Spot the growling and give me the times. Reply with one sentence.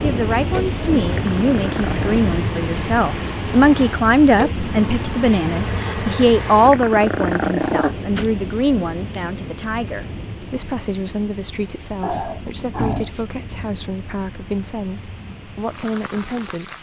You can hear the growling from 1.1 to 2.2 s, from 6.7 to 8.2 s and from 12.0 to 13.1 s.